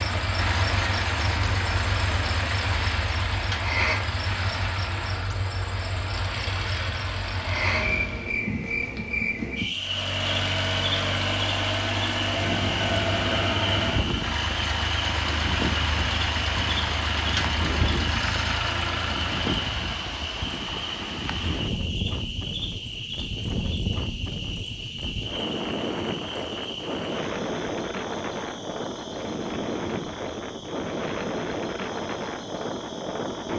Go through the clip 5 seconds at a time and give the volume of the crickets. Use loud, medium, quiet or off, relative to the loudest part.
loud, loud, loud, loud, medium, medium, quiet.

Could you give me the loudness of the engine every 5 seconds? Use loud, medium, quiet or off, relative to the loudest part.
loud, medium, loud, loud, off, off, off.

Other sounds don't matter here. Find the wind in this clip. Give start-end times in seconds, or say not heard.
12.2-33.5.